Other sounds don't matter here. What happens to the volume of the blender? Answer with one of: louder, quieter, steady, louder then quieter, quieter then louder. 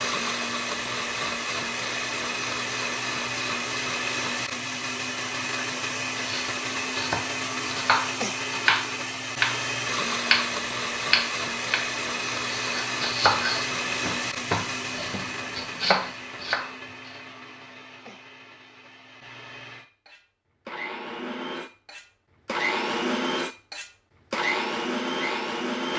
quieter then louder.